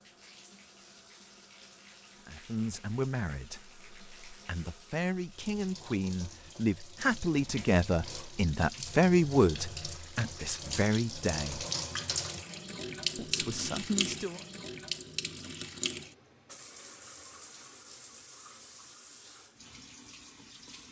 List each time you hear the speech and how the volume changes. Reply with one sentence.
You can hear the speech from 2.2 to 11.7 s, getting louder then quieter; and briefly from 13.2 to 14.4 s.